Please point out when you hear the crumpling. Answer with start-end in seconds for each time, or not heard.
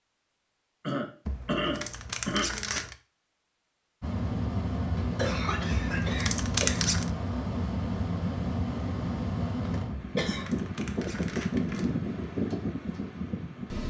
1.2-3.0, 5.7-7.1, 9.9-11.9.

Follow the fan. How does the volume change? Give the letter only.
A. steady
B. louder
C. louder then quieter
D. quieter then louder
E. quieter
A.